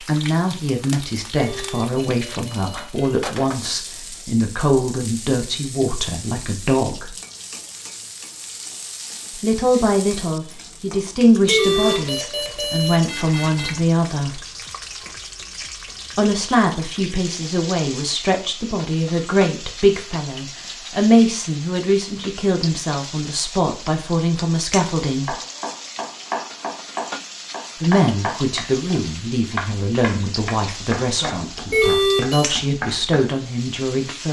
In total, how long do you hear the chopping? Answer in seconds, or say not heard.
8 s.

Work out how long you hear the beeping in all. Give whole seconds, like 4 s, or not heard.
5 s.